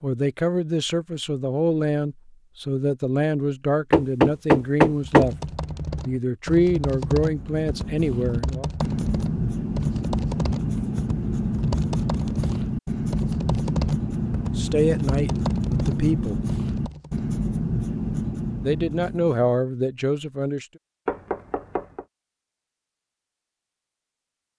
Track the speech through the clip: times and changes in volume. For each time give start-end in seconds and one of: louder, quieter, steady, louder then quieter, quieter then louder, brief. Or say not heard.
0.0-5.3 steady
6.0-8.7 brief
14.6-16.4 brief
18.6-20.6 brief.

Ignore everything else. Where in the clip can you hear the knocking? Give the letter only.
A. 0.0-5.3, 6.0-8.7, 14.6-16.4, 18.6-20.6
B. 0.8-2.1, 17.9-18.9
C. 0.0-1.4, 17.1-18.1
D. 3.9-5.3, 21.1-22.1
D.